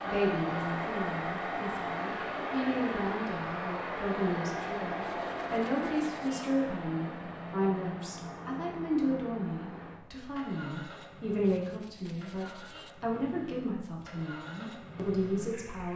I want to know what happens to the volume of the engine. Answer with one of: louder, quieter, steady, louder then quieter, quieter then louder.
quieter.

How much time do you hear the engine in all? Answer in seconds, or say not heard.
16 s.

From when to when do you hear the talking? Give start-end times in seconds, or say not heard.
0.0-15.9.